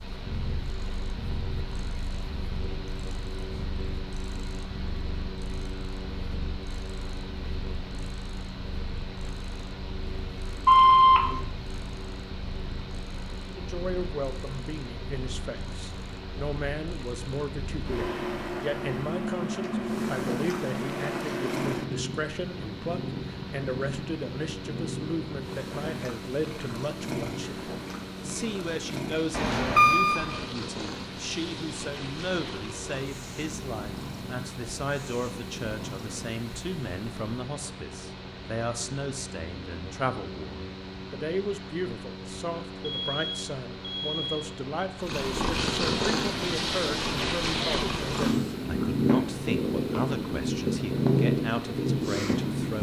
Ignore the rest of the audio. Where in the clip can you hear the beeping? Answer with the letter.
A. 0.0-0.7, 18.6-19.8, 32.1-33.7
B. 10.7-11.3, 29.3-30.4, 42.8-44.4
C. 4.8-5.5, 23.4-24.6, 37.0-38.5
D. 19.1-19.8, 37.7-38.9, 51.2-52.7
B.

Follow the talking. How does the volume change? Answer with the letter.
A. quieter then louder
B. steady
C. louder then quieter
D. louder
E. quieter
B.